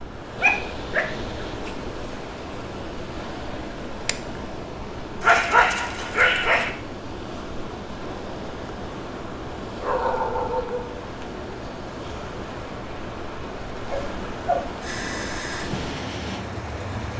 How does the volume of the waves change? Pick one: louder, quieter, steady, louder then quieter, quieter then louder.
steady.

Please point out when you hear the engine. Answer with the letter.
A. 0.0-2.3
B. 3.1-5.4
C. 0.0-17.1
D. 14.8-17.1
D.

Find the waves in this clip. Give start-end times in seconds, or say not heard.
0.0-17.1.